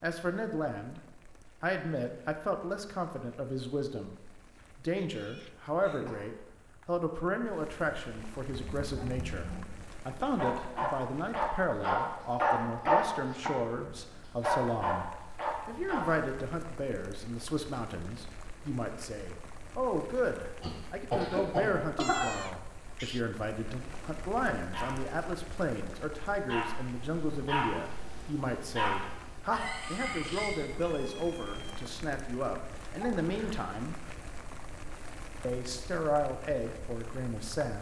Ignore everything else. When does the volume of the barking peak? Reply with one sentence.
The loudest moment of the barking is at 13 seconds.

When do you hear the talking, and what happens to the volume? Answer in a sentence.
The talking can be heard briefly from 0.0 to 1.0 s; from 1.6 to 15.1 s, at a steady volume; from 15.7 to 34.0 s, at a steady volume; and briefly from 35.4 to 37.7 s.